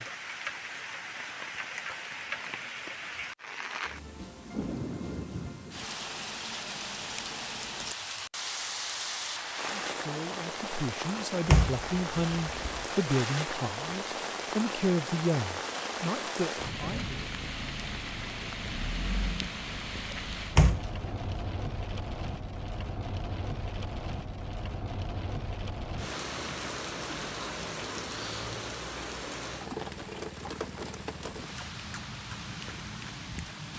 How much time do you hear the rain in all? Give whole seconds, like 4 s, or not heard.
34 s.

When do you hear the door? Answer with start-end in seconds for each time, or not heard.
11.4-12.8, 20.6-21.3.